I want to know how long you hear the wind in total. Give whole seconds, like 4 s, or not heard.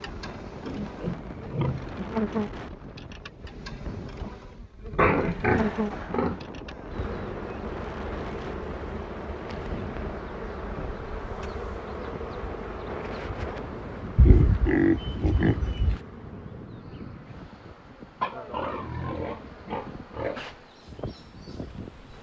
22 s.